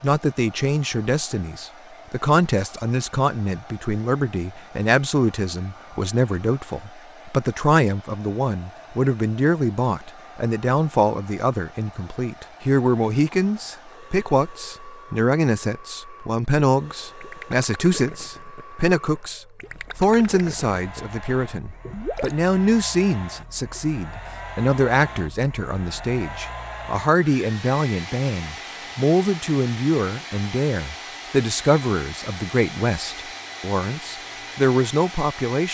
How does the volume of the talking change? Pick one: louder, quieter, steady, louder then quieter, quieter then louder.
steady.